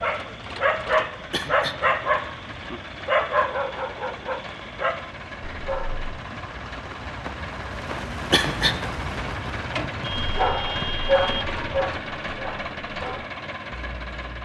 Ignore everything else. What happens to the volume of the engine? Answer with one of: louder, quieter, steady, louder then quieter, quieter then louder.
louder.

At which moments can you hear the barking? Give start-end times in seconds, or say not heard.
0.0-6.2, 10.2-14.3.